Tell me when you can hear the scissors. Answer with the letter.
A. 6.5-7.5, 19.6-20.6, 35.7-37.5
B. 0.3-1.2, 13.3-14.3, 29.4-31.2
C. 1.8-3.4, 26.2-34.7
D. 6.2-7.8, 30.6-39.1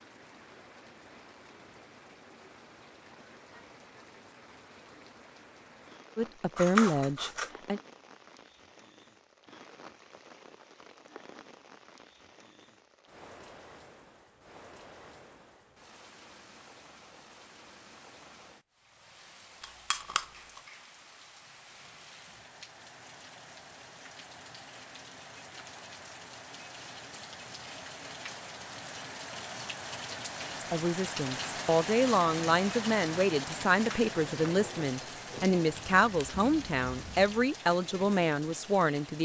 A.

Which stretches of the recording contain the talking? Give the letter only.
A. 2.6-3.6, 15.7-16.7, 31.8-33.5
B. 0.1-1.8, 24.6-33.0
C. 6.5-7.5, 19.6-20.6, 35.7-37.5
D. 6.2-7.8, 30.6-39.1
D.